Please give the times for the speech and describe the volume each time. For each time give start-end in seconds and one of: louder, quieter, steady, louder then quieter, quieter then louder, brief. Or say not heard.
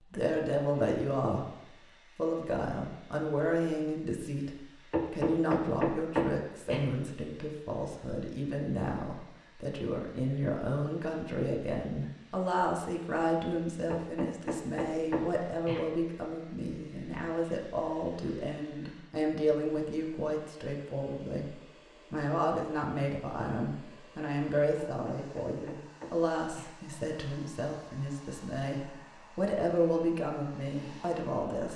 0.0-1.5 brief
2.1-31.7 steady.